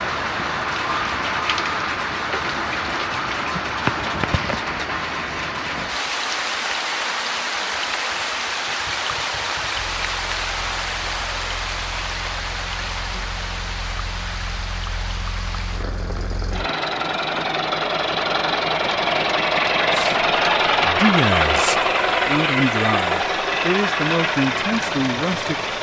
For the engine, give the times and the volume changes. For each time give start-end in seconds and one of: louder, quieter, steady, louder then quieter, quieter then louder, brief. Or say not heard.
0.1-25.7 quieter then louder.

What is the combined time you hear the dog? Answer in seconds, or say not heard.
not heard.